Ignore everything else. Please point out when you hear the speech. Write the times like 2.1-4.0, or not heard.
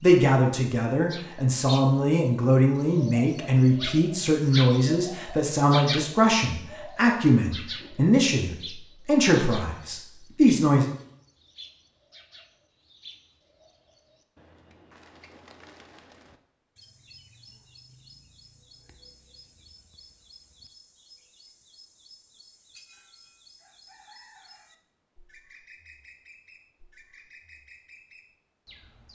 0.0-10.8.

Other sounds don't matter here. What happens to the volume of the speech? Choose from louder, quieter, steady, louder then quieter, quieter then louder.
steady.